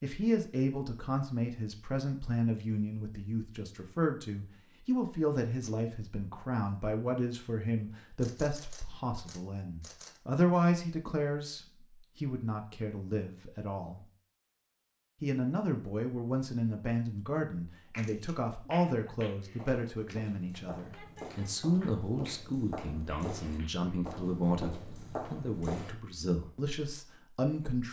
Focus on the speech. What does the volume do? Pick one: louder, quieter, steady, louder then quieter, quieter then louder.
steady.